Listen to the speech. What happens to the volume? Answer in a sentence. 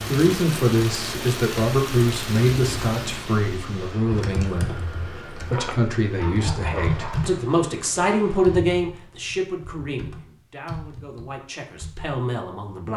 The loudness of the speech goes down.